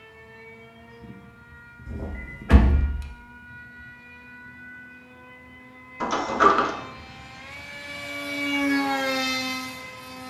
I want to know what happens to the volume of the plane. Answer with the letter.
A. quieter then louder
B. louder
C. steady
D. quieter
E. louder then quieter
B.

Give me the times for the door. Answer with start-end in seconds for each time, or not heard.
1.9-3.0, 6.0-6.8.